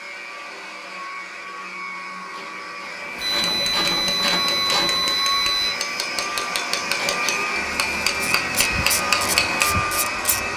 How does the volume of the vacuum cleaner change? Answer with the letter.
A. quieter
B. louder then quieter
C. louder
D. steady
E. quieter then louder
C.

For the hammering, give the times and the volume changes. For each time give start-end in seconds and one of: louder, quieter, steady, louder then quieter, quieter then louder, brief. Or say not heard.
2.9-9.8 louder.